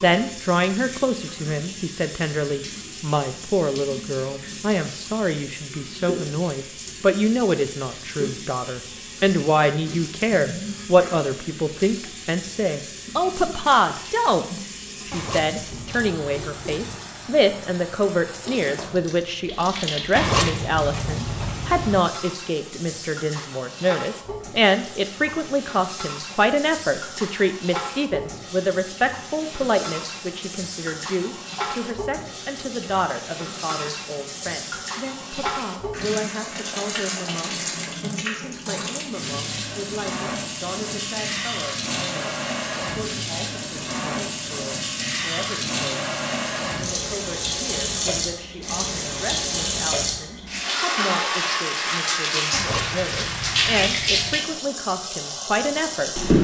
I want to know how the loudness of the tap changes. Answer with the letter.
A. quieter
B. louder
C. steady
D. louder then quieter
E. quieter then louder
B.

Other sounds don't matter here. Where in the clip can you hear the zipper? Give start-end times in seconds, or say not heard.
15.1-16.8, 20.1-22.0, 52.5-54.4.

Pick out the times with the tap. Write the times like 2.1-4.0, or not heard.
0.0-56.3.